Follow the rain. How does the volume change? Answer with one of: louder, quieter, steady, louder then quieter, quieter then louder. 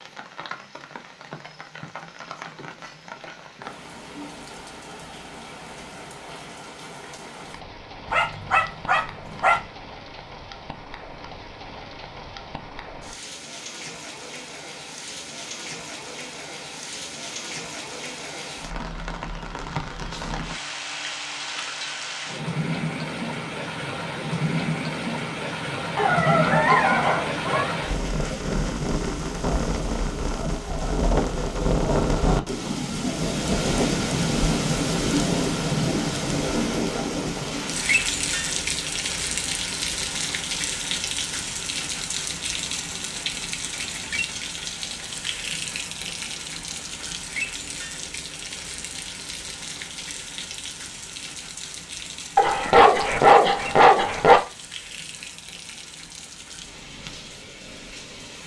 louder then quieter.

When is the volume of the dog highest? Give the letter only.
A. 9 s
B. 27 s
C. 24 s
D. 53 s
D.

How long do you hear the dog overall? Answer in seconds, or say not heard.
5 s.